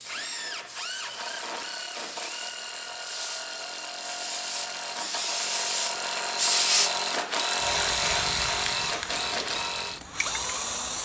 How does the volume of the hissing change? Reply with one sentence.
The volume of the hissing goes up, then down.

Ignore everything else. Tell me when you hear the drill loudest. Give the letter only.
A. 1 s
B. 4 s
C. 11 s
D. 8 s
D.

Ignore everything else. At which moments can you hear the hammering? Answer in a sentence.
You can't hear the hammering here.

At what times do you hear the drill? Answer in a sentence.
You can hear the drill from 0.0 to 11.0 s.